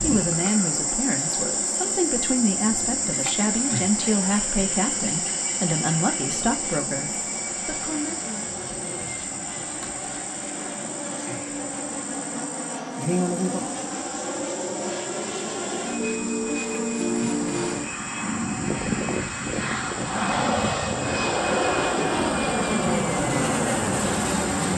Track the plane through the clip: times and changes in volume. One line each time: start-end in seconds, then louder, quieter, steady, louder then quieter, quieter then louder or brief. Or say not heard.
0.0-24.7 louder.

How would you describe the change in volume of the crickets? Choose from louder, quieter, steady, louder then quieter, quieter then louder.
quieter.